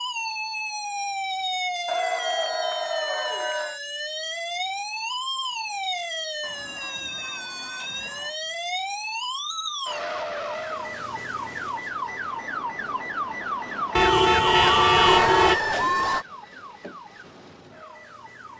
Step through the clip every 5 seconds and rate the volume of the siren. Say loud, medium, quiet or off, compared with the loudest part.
loud, loud, loud, medium.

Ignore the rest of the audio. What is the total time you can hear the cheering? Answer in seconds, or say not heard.
6 s.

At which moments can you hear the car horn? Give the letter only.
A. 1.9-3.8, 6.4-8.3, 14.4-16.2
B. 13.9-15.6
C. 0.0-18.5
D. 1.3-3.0
B.